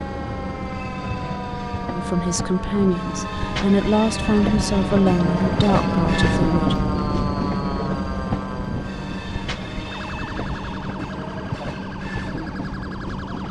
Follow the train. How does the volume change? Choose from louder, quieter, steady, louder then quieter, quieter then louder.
louder then quieter.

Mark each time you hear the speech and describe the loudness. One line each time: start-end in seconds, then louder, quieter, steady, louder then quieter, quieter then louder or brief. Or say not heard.
1.9-6.8 steady.